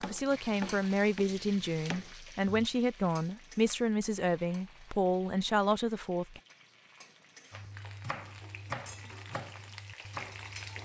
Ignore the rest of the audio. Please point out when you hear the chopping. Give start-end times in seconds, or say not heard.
0.0-2.7, 7.5-10.8.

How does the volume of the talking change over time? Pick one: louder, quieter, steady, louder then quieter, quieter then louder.
steady.